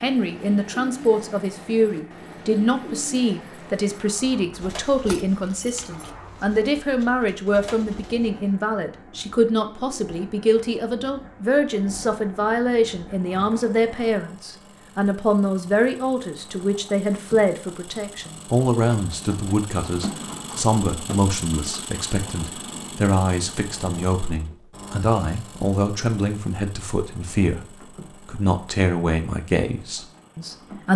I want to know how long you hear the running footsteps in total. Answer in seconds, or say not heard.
not heard.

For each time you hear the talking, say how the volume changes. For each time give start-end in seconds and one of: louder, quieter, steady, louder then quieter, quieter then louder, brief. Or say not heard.
0.0-30.9 steady.